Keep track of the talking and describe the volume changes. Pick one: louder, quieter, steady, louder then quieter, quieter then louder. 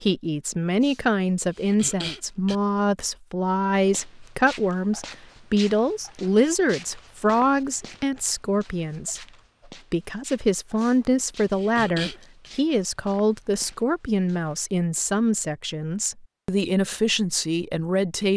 steady.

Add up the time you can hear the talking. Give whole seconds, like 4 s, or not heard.
18 s.